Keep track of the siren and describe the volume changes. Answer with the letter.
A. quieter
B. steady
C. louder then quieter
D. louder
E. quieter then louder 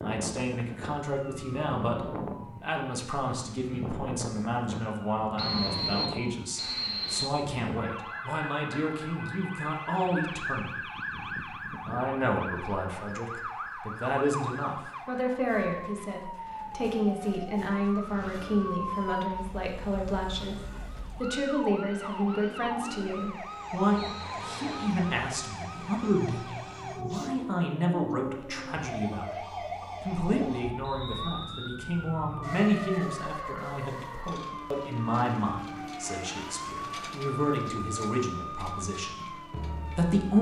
B.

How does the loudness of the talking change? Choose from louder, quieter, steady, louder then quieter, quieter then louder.
steady.